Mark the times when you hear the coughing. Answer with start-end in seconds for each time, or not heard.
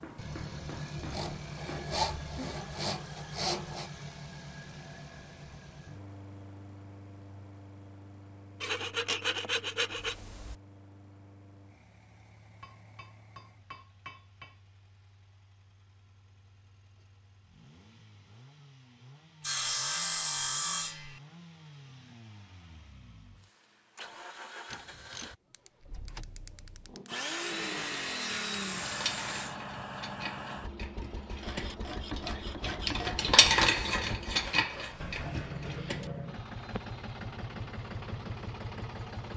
not heard.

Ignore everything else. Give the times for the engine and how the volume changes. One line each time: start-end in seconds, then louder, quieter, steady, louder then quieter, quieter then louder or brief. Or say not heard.
0.0-39.3 quieter then louder.